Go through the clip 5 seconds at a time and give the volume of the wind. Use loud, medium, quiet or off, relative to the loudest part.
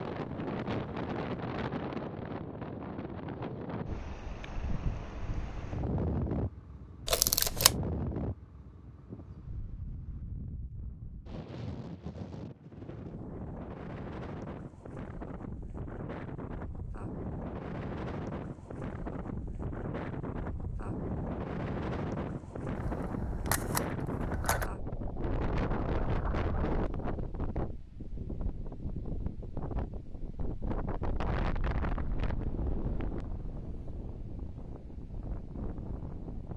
loud, loud, medium, loud, loud, loud, loud, medium.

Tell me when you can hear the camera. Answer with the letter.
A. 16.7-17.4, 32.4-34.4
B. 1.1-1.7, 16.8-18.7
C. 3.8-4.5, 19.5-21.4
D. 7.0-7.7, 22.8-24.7
D.